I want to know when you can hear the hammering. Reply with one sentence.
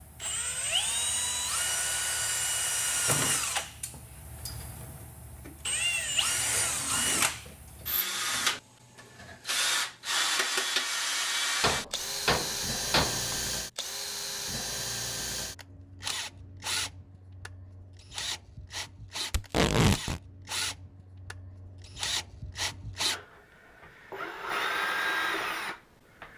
The hammering can be heard from 11.6 to 13.3 s.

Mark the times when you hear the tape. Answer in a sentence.
You can hear the tape from 19.3 to 20.2 s.